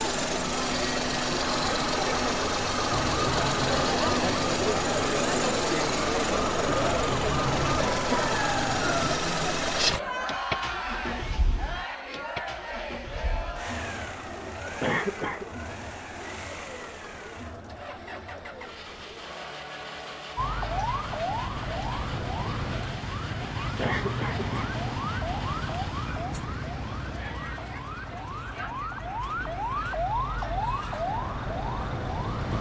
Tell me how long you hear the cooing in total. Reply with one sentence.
The cooing can't be heard in this clip.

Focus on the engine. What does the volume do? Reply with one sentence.
The volume of the engine goes down.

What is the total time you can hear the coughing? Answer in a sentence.
The coughing can be heard for 2 seconds in total.